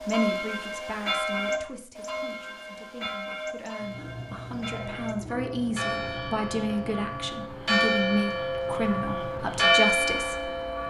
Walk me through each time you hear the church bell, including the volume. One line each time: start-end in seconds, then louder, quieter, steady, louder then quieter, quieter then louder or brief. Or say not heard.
0.0-10.8 quieter then louder.